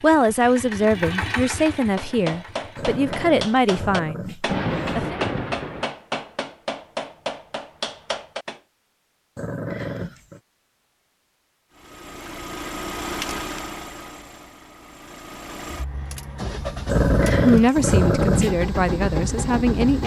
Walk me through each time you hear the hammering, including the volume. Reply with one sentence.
The hammering can be heard from 1.8 to 8.6 s, at a steady volume.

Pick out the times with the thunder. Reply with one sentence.
You can hear the thunder from 4.5 to 5.8 s.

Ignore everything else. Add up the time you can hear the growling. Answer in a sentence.
The growling can be heard for 5 seconds in total.